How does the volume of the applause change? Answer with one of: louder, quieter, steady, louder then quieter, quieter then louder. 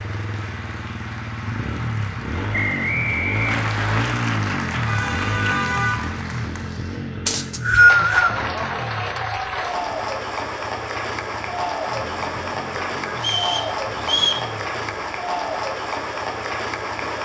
louder.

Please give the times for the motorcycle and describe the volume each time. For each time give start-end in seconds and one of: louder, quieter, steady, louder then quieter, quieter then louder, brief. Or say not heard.
0.0-17.2 quieter.